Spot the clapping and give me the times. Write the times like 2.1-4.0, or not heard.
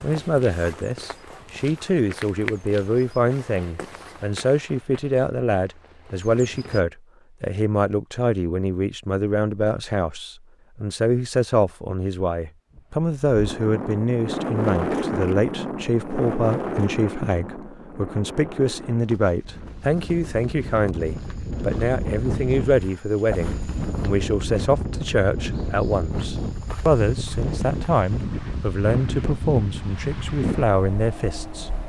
not heard.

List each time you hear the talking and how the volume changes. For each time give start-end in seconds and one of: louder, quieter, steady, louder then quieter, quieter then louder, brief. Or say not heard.
0.0-31.7 steady.